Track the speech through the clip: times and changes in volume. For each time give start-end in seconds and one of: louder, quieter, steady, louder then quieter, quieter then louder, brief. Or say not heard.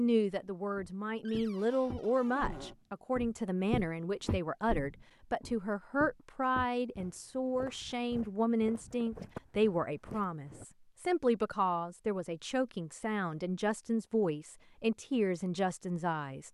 0.0-16.4 steady.